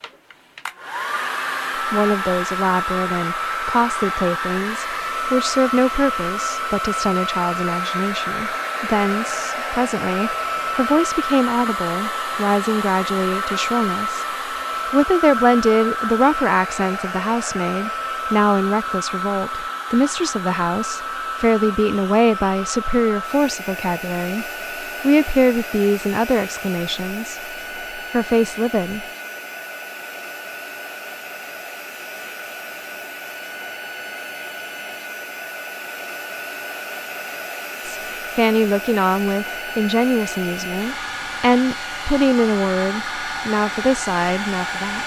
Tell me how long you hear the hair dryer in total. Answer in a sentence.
You can hear the hair dryer for 45 seconds altogether.